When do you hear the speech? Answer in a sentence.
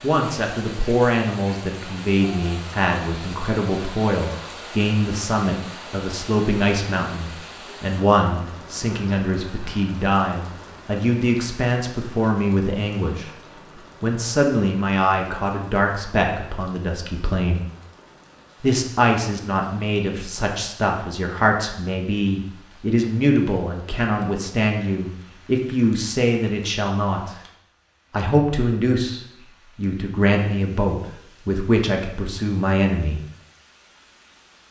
The speech can be heard from 0.0 to 13.3 s, from 14.0 to 17.6 s, from 18.6 to 27.4 s and from 28.1 to 33.2 s.